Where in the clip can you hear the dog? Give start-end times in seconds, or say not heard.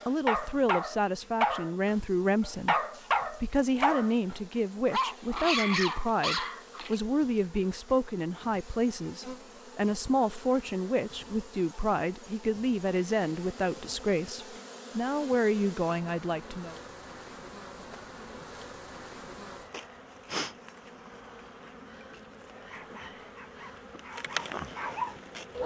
0.0-7.0, 22.5-25.6.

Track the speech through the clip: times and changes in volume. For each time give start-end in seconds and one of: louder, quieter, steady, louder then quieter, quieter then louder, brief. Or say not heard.
0.1-16.8 steady.